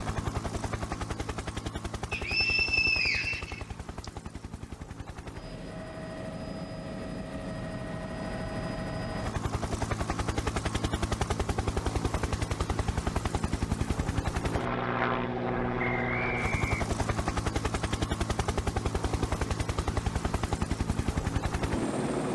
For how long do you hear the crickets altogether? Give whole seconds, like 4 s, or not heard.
not heard.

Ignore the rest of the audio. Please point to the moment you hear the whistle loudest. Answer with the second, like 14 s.
3 s.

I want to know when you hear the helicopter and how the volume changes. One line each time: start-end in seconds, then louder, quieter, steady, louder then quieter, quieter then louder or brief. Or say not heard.
0.0-22.3 louder.